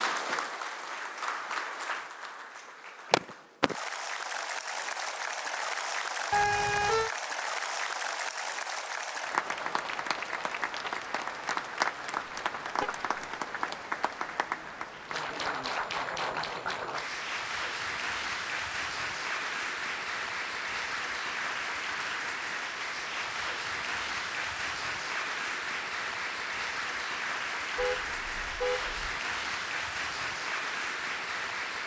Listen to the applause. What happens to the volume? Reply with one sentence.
The loudness of the applause stays about the same.